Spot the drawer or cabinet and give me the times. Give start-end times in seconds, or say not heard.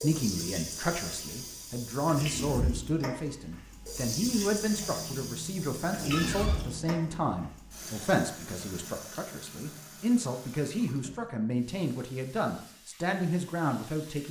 6.1-6.6.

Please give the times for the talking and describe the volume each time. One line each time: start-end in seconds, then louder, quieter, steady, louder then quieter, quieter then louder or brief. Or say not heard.
0.0-14.2 steady.